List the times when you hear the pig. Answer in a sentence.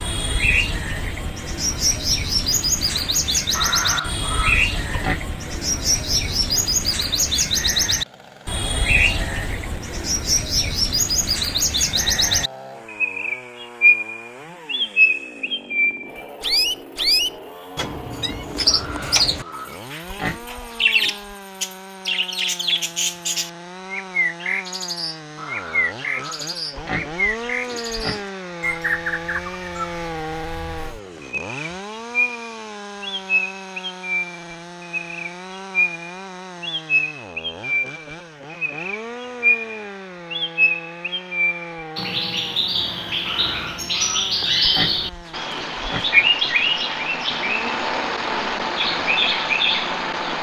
The pig can be heard from 3.5 to 5.2 s, from 18.7 to 21.4 s, from 25.4 to 28.3 s and from 43.2 to 46.1 s.